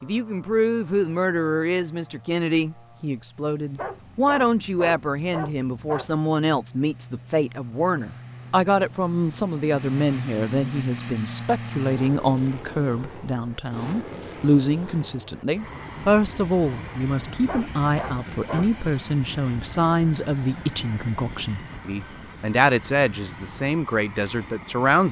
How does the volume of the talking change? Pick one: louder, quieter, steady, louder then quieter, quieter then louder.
steady.